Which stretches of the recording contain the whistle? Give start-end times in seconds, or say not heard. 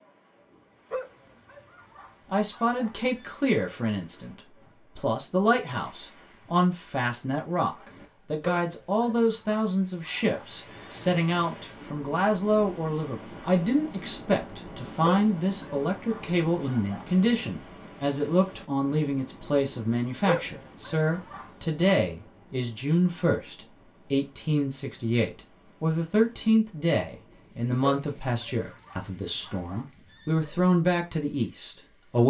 not heard.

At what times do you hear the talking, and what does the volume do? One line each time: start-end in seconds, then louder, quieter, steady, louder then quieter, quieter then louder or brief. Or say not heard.
2.3-32.2 steady.